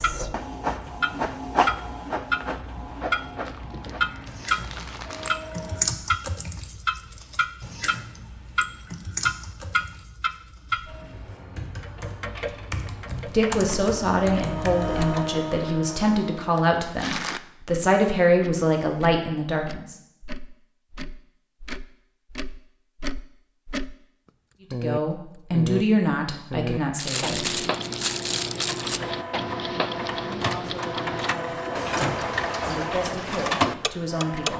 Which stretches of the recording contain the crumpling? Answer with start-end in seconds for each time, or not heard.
3.5-5.5, 16.5-17.4, 26.9-29.0.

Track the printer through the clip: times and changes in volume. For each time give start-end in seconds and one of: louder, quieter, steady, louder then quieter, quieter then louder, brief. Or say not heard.
0.0-5.8 quieter
10.8-16.6 louder
28.6-34.5 louder.